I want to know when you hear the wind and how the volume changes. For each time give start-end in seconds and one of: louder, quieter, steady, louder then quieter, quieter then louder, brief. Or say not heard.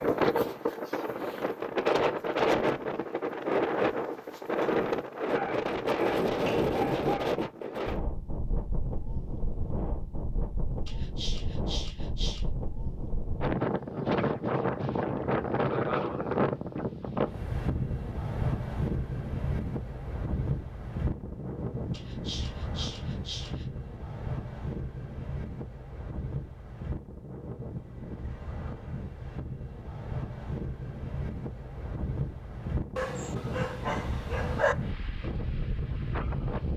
0.0-36.7 quieter.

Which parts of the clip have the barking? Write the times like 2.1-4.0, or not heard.
5.2-7.3, 10.8-12.4, 21.9-23.6, 33.0-34.8.